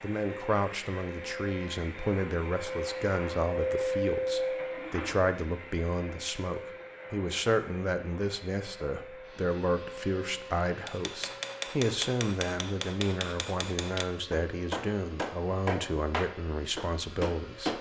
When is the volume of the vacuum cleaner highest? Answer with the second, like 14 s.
4 s.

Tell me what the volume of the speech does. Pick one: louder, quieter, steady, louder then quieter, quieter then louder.
steady.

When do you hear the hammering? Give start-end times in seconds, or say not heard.
10.8-17.7.